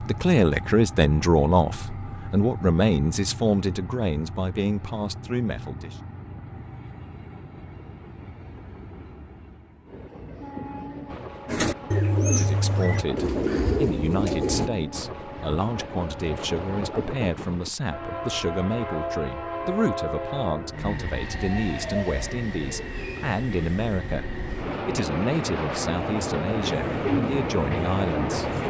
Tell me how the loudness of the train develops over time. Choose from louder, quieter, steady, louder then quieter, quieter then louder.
louder.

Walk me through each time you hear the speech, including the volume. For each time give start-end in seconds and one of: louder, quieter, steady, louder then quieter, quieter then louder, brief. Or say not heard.
0.0-6.0 quieter
12.3-28.6 steady.